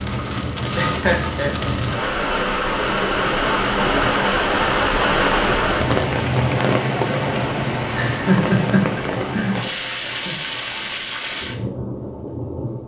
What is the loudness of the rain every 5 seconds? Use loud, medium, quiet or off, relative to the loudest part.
loud, loud, medium.